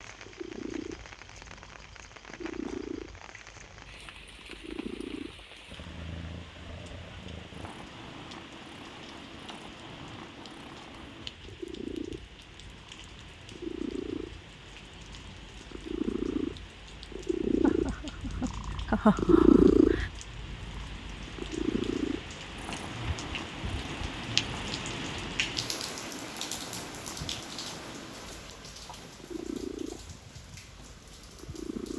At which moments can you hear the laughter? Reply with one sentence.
The laughter can be heard from 17.6 to 20.1 s.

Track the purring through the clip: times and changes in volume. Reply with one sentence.
The purring can be heard from 0.0 to 31.9 s, getting louder then quieter.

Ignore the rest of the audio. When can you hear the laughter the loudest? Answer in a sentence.
The loudest moment of the laughter is at 19 seconds.